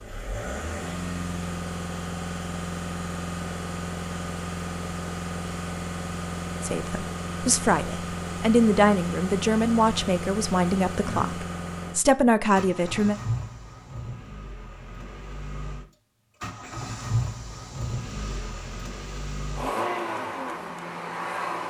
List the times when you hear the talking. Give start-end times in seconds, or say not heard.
6.6-13.2.